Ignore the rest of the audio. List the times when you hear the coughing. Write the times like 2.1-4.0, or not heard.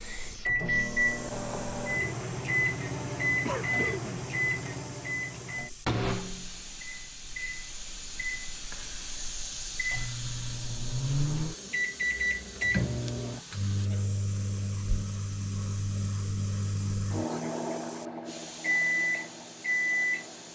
3.5-4.8.